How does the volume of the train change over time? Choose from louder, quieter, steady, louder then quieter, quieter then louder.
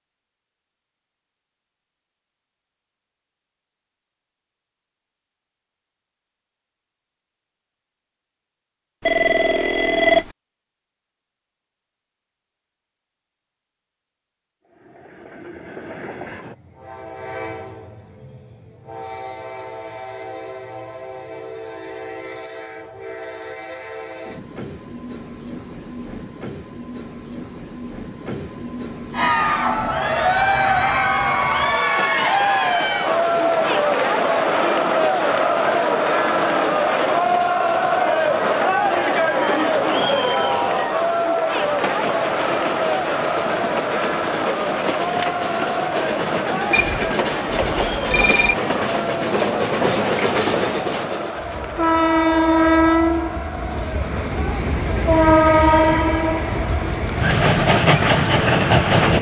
louder.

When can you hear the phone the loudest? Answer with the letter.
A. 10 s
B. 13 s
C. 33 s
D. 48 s
A.